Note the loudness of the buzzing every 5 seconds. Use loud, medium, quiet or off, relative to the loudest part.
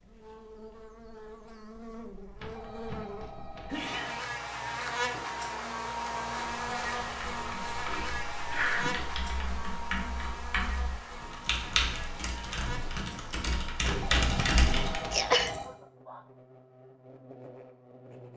medium, loud, medium, quiet.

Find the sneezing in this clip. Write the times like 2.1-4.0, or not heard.
3.6-4.2, 8.5-8.9, 15.1-15.7.